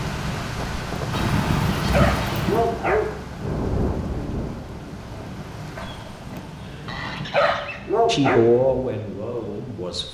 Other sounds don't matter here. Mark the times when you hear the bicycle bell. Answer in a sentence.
You can't hear the bicycle bell here.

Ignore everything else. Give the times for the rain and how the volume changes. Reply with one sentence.
The rain can be heard from 0.0 to 10.0 s, getting quieter.